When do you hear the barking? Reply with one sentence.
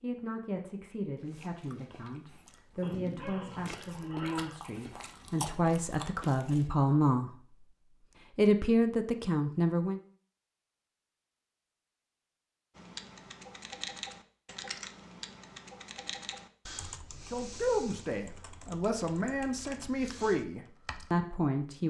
The barking can be heard from 2.8 to 4.6 s.